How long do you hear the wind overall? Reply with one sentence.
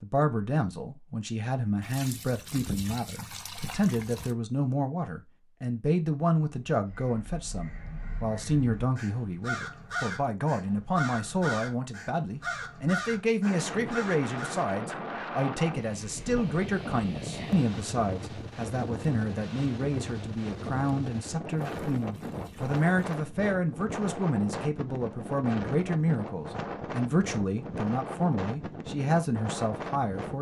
The wind can be heard for 17 seconds in total.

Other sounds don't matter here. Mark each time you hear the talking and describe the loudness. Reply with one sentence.
You can hear the talking from 0.0 to 30.3 s, at a steady volume.